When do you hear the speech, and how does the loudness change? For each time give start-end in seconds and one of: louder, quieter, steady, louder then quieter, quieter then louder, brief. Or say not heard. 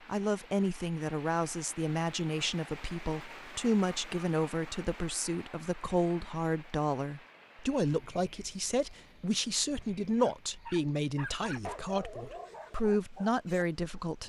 0.1-14.2 steady.